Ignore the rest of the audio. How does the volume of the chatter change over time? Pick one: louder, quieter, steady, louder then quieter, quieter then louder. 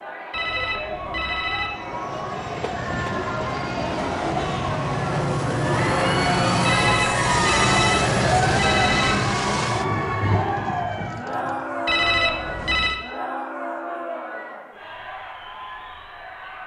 louder then quieter.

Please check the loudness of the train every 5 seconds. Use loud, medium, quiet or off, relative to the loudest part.
medium, loud, medium, off.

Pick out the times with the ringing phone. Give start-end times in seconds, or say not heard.
0.3-1.9, 6.6-9.3, 11.8-13.0.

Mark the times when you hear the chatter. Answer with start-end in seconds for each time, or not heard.
0.0-16.6.